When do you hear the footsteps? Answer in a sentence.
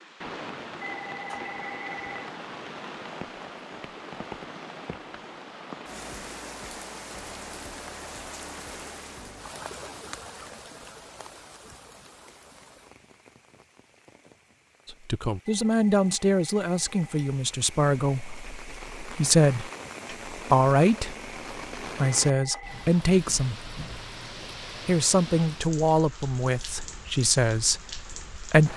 You can't hear the footsteps here.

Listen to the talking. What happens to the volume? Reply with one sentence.
The volume of the talking stays about the same.